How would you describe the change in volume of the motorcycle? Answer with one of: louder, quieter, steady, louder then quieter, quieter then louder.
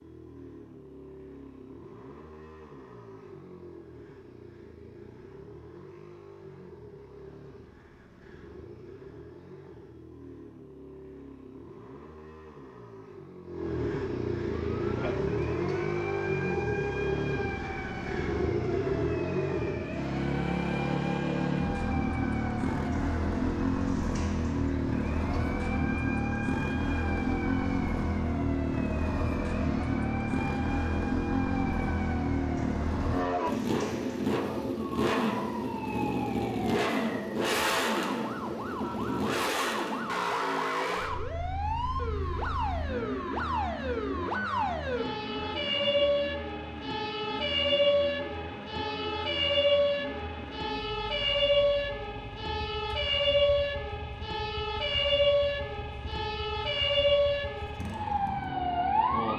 louder then quieter.